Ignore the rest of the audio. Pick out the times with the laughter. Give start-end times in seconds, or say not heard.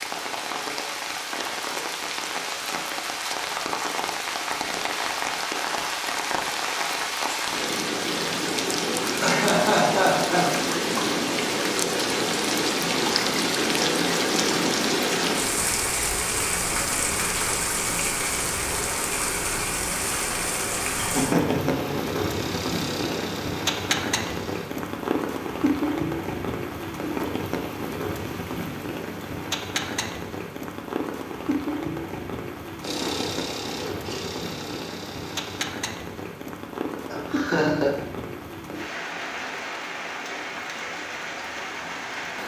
9.2-10.6, 20.9-21.9, 37.0-37.9.